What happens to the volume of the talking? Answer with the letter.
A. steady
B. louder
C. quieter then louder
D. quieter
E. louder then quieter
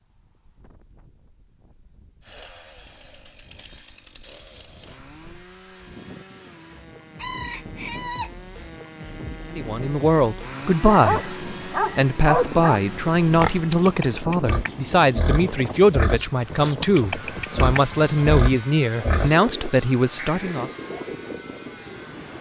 A.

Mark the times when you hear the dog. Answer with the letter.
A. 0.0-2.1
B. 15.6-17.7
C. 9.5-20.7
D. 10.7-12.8
D.